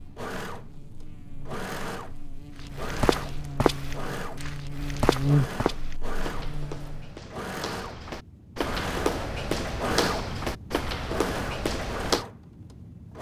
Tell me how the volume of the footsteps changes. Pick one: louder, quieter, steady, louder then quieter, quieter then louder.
quieter then louder.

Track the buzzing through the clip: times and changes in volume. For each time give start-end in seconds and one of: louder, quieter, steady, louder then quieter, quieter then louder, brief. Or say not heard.
0.0-7.2 louder then quieter.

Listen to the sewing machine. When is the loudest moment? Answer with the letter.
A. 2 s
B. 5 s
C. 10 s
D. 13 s
C.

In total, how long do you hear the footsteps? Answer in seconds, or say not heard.
10 s.